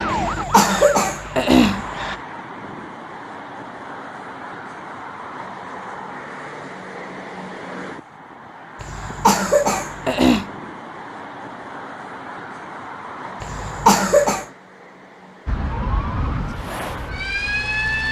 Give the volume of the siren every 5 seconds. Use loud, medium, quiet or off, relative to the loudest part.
loud, off, off, loud.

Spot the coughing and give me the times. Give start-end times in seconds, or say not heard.
0.1-2.0, 8.8-10.4, 13.4-14.4.